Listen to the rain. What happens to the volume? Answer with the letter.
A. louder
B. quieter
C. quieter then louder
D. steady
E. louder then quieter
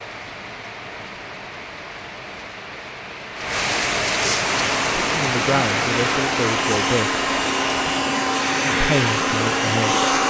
E.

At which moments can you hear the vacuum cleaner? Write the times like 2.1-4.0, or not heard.
4.5-10.2.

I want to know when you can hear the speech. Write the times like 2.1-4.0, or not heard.
5.0-7.2, 8.8-10.1.